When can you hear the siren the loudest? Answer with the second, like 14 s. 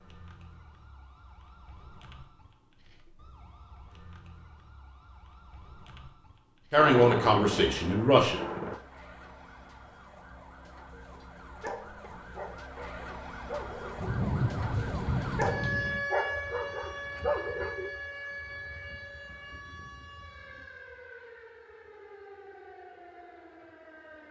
16 s.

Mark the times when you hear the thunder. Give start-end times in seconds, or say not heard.
6.8-8.8, 13.9-16.0.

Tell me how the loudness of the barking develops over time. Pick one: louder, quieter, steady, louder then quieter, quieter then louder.
louder.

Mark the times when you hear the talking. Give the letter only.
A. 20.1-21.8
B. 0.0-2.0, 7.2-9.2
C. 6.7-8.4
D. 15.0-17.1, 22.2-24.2
C.